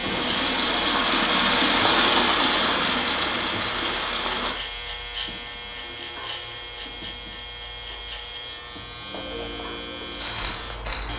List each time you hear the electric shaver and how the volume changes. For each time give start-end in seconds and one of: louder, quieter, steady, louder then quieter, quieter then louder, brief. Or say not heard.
0.0-11.1 quieter.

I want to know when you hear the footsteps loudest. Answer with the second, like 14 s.
10 s.